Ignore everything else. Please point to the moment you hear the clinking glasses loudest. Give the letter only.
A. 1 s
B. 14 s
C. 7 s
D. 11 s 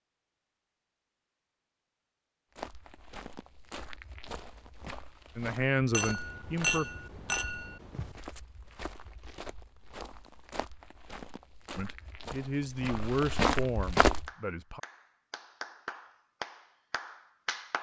C.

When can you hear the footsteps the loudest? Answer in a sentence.
The loudest moment of the footsteps is at 14 seconds.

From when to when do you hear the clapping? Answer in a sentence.
The clapping can be heard from 14.2 to 17.7 s.